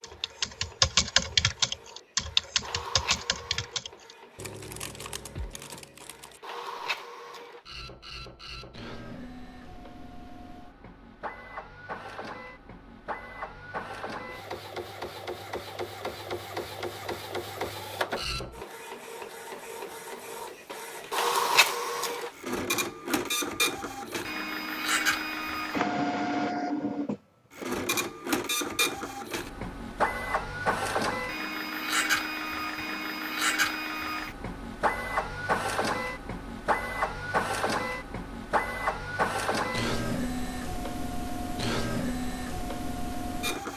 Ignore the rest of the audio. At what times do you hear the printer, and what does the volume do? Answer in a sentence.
The printer can be heard from 0.0 to 43.7 s, getting louder.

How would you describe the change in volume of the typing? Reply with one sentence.
The loudness of the typing goes down.